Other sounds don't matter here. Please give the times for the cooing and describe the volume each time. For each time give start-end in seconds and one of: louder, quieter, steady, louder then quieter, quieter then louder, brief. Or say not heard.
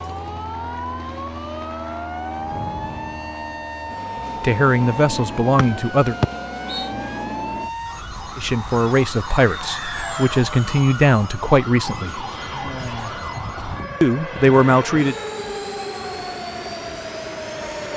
not heard.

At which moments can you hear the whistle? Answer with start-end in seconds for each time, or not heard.
5.5-6.9.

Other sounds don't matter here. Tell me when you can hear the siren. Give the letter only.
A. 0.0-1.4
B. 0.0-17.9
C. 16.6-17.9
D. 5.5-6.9
B.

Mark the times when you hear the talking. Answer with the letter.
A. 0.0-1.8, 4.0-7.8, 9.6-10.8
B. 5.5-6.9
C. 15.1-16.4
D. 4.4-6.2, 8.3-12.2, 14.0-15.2
D.